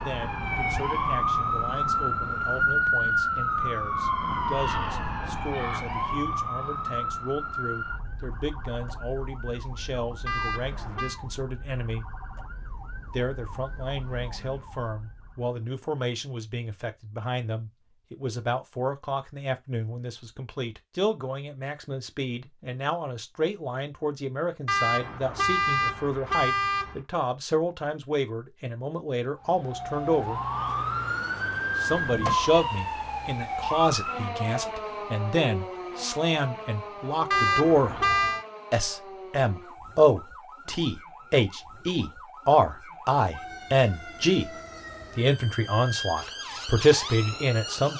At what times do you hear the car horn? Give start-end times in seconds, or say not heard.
10.2-11.2, 24.6-27.0, 37.3-38.5.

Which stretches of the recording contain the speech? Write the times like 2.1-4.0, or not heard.
0.0-12.1, 13.1-30.4, 31.8-38.0, 38.7-44.5, 45.1-47.9.